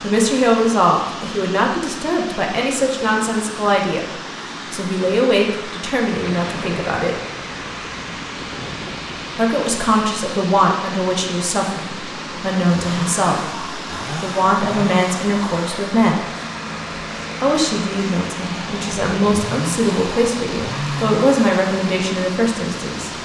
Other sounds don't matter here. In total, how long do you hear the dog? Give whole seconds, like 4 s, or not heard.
not heard.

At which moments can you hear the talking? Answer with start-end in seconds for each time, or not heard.
0.0-7.2, 9.3-16.2, 17.4-23.1.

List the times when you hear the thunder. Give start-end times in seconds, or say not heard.
6.2-9.4.